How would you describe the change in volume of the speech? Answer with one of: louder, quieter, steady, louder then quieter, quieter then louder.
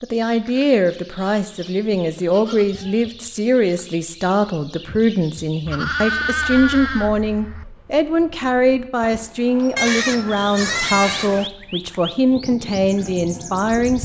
steady.